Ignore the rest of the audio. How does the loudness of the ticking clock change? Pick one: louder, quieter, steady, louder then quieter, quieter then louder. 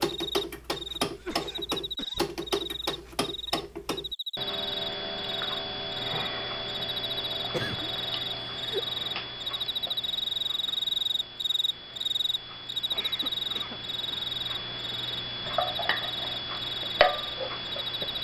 quieter then louder.